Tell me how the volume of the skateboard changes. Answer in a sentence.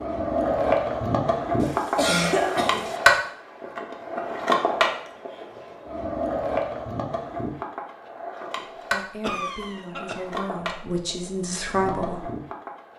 The loudness of the skateboard goes down.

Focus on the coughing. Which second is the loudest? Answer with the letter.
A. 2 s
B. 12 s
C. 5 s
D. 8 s
A.